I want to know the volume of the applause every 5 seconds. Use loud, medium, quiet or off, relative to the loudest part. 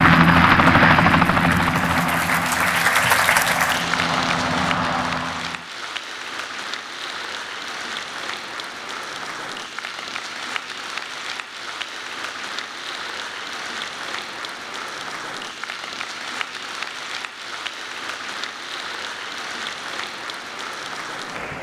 loud, medium, medium, medium, medium.